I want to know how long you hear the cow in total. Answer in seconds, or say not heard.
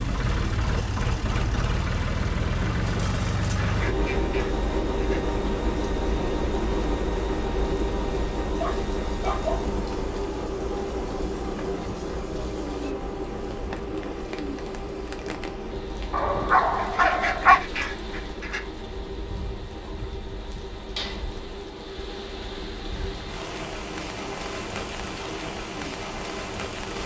not heard.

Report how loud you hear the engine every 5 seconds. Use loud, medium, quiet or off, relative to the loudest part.
loud, loud, loud, medium, medium, medium.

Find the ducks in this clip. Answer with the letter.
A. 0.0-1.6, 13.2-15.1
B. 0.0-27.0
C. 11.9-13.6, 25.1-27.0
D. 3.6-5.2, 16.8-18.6
D.